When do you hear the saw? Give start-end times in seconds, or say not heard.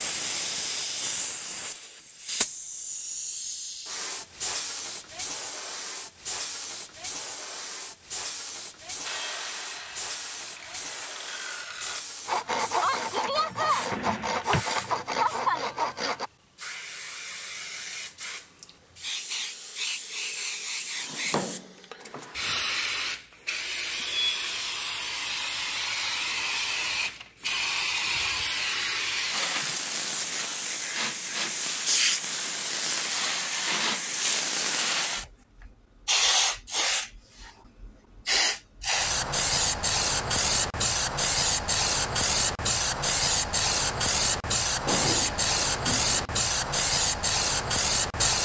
9.0-16.3.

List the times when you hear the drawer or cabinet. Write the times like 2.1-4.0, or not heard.
13.9-14.7, 20.9-22.6, 44.9-46.3.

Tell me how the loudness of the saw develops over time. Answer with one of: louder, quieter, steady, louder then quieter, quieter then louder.
louder.